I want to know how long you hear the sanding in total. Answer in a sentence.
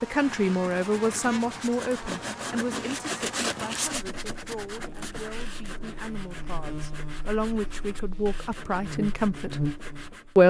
You can hear the sanding for 10 seconds altogether.